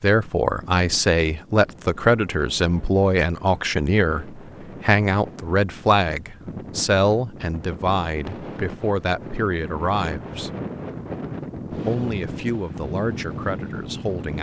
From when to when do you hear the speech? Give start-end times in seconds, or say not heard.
0.0-10.5, 11.7-14.3.